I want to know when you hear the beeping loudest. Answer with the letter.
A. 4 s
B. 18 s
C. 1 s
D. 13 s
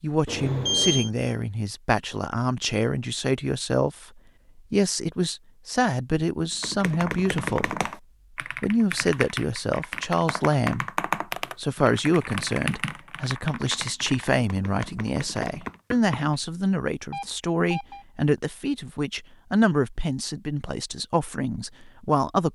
C.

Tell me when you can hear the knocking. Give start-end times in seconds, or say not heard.
14.7-16.4.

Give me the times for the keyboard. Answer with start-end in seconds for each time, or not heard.
6.6-15.8.